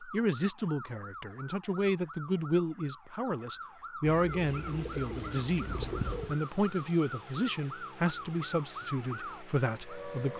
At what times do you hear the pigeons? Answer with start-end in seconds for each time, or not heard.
4.0-6.4.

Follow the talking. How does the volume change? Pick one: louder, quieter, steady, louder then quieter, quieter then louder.
steady.